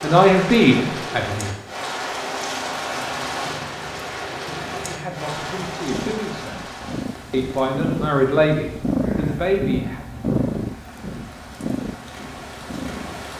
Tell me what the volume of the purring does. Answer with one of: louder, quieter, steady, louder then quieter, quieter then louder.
louder then quieter.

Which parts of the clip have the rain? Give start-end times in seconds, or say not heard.
0.0-13.3.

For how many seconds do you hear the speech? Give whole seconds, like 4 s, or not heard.
6 s.